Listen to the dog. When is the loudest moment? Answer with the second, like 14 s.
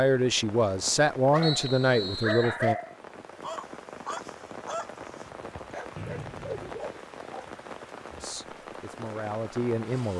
3 s.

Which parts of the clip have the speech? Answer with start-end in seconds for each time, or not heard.
0.0-2.8, 8.1-10.1.